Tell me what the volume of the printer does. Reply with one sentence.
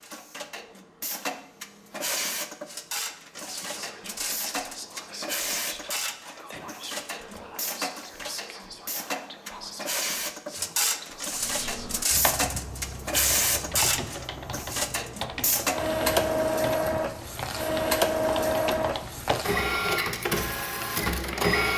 The volume of the printer goes up.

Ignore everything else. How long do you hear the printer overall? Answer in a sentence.
The printer can be heard for 22 seconds in total.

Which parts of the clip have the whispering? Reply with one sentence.
The whispering can be heard from 3.4 to 12.1 s.